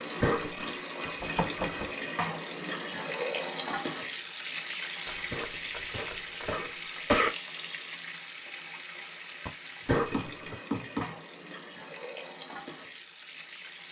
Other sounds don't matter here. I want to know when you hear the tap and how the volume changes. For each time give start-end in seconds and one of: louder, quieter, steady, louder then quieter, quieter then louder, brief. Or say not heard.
0.0-13.8 quieter.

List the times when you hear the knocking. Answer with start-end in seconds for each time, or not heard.
1.1-1.9, 5.0-6.7, 9.4-11.2.